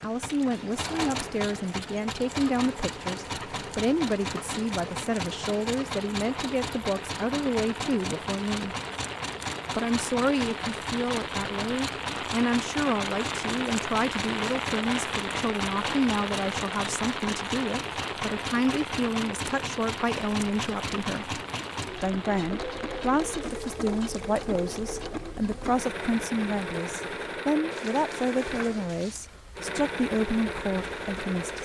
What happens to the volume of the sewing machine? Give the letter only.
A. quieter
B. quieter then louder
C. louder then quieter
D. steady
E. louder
D.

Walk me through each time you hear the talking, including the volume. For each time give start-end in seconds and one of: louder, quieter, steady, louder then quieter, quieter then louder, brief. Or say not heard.
0.0-8.8 steady
9.8-31.6 steady.